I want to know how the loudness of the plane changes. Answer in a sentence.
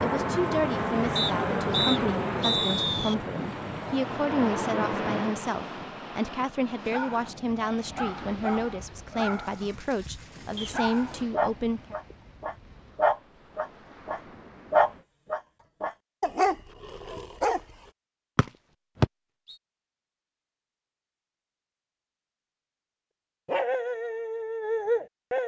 The loudness of the plane goes down, then up.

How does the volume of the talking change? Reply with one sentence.
The volume of the talking stays about the same.